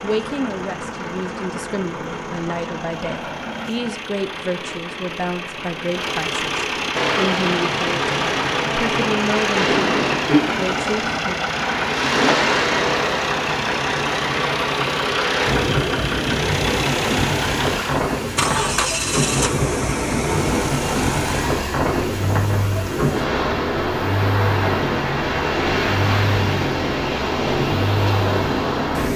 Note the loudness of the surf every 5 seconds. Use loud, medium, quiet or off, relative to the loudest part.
off, loud, loud, loud, loud, loud.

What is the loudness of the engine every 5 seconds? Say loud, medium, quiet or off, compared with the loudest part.
medium, loud, loud, loud, loud, loud.